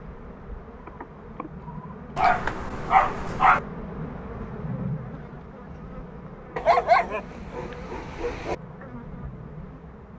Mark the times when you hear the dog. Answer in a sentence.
You can hear the dog from 2.1 to 3.6 s and from 6.5 to 8.6 s.